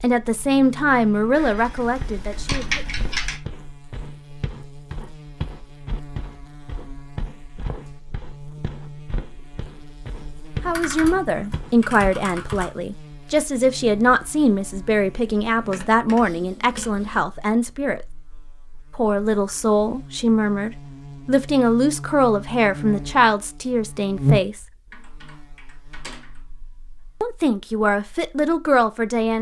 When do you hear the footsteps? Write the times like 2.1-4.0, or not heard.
2.0-12.7.